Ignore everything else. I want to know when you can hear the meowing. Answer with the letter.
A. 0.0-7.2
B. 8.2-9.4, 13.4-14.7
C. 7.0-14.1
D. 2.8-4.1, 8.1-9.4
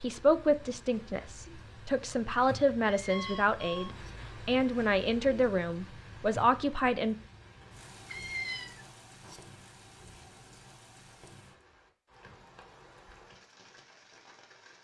D.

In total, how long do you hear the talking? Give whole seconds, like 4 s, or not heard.
7 s.